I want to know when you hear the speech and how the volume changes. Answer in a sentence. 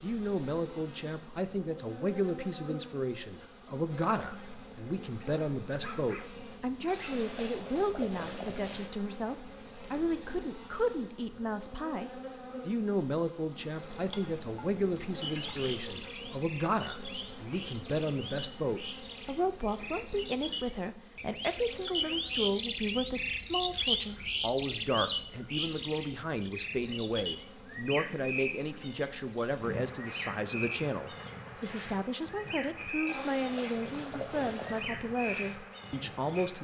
The speech can be heard from 0.0 to 36.5 s, at a steady volume.